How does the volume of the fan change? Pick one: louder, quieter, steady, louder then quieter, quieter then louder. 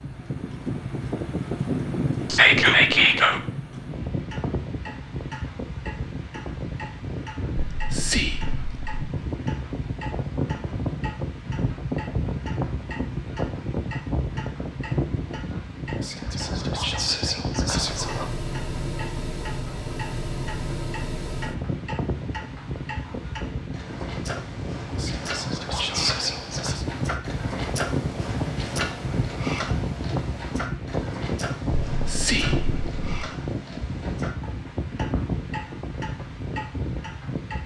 steady.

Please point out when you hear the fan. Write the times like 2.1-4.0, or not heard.
0.0-37.6.